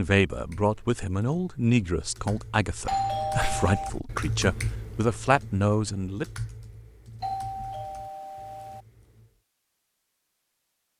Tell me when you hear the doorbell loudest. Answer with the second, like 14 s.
3 s.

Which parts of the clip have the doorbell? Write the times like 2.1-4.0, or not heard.
2.9-3.9, 7.2-8.8.